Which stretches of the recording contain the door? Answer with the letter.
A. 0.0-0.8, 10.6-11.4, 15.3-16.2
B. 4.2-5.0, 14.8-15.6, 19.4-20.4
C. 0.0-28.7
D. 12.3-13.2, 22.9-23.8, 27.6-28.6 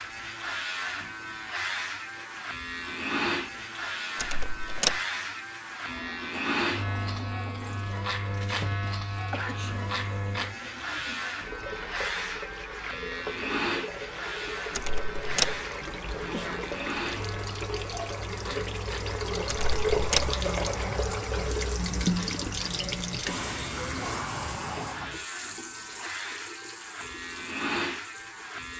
B.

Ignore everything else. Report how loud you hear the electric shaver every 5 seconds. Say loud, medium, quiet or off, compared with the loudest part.
loud, loud, loud, medium, medium, loud.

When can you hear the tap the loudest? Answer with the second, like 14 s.
20 s.